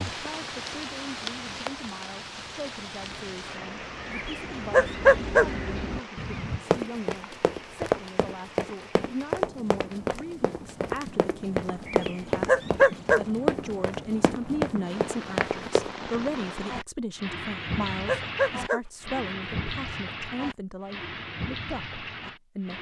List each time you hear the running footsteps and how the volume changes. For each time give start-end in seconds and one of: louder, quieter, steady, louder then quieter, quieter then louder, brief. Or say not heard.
6.7-15.9 steady.